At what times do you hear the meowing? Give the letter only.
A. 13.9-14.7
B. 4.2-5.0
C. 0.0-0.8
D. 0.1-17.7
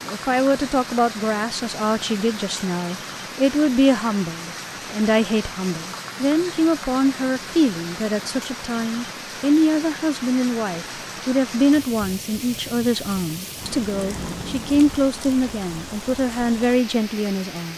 A.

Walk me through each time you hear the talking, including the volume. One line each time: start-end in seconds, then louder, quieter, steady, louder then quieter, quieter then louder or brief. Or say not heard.
0.1-17.7 steady.